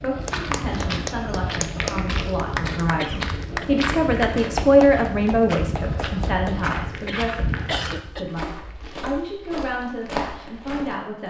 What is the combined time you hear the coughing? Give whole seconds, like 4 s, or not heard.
2 s.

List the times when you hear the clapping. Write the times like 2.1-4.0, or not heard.
0.2-6.8.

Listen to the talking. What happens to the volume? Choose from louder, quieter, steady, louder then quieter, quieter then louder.
louder then quieter.